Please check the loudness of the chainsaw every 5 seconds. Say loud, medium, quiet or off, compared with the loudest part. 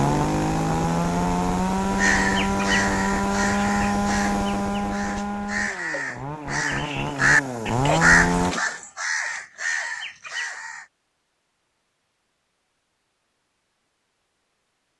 loud, loud, off.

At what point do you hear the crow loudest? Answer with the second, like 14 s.
8 s.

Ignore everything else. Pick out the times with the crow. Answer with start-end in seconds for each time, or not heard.
1.9-10.8.